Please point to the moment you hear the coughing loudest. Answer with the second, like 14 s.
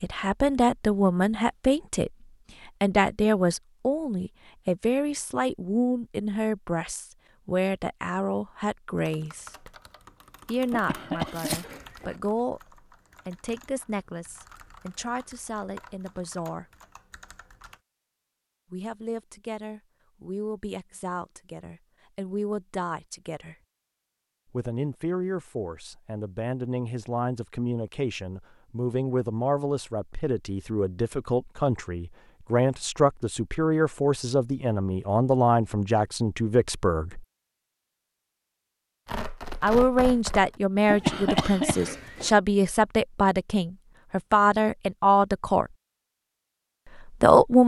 41 s.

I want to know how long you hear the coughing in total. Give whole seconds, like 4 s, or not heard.
3 s.